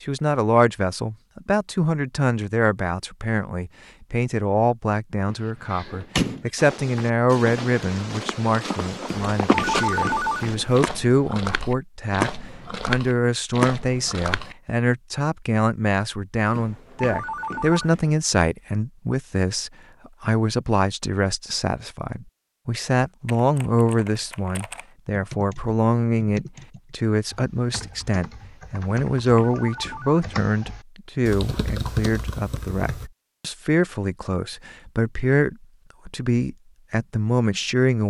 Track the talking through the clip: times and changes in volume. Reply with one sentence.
You can hear the talking from 0.0 to 38.0 s, at a steady volume.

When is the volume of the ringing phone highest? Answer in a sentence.
The loudest moment of the ringing phone is at 10 seconds.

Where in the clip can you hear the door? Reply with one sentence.
You can hear the door from 5.2 to 6.5 s.